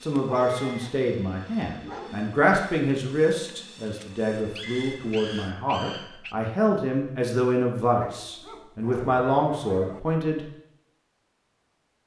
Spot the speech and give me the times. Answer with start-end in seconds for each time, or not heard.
0.0-10.4.